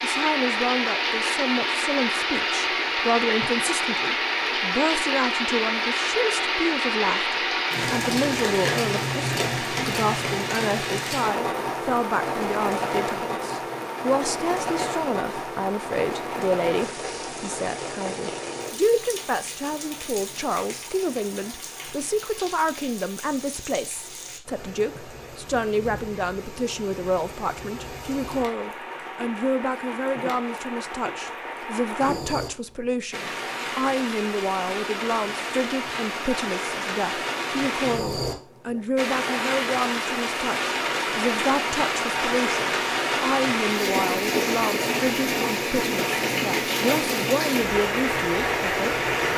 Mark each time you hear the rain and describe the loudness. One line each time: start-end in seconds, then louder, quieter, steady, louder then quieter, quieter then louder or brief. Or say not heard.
0.0-49.3 quieter then louder.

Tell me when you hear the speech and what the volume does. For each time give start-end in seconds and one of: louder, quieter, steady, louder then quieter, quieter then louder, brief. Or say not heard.
0.0-49.0 steady.